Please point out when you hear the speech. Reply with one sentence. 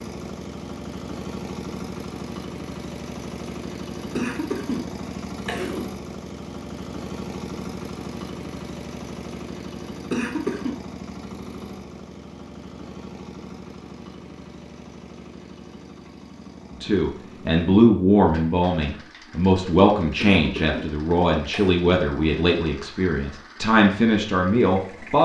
You can hear the speech from 16.8 to 25.2 s.